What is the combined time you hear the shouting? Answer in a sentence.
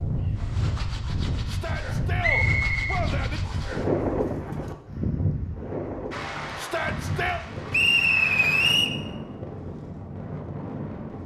You can hear the shouting for 3 seconds altogether.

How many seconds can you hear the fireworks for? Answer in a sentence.
You can't hear the fireworks here.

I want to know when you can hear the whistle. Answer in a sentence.
You can hear the whistle from 2.2 to 3.7 s and from 7.7 to 8.9 s.